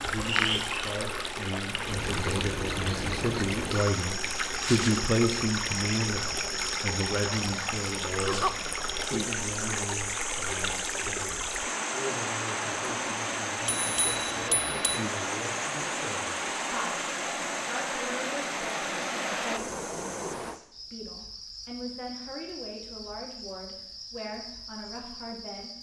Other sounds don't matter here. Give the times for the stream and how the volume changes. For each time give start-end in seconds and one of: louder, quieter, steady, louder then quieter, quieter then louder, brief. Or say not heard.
0.0-20.6 steady.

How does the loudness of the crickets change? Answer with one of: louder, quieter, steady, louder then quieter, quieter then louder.
quieter.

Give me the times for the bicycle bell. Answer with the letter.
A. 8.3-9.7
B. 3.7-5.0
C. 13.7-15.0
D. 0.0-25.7
C.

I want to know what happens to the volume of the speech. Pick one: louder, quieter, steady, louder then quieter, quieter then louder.
quieter.